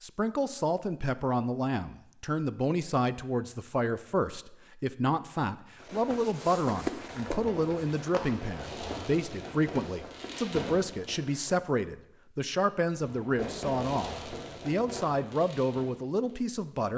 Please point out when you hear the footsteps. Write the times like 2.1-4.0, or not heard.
5.8-11.6.